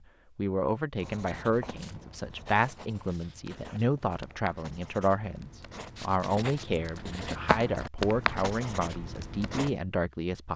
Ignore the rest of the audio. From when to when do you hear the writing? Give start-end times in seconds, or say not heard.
0.9-9.8.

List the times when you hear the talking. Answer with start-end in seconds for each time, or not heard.
0.3-10.5.